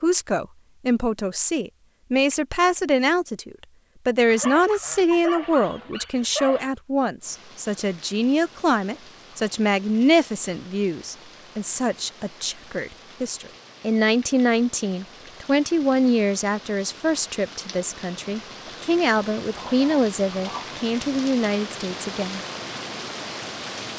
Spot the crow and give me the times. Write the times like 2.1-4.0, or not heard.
not heard.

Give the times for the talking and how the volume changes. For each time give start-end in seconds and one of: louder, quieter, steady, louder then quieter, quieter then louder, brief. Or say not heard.
0.0-22.4 steady.